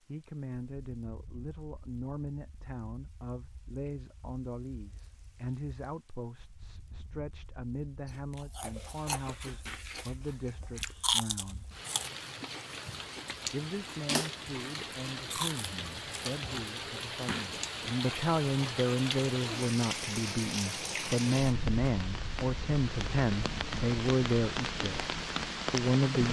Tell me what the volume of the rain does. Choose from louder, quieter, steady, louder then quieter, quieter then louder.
louder.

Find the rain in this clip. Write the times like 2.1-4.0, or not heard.
0.0-26.2.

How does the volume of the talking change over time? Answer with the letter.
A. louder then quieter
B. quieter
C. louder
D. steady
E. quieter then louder
C.